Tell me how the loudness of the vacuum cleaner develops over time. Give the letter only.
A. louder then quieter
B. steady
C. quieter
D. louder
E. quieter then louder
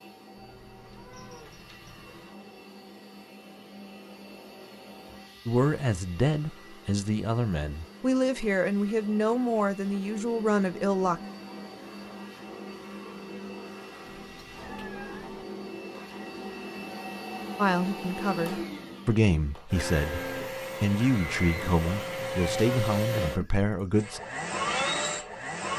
D.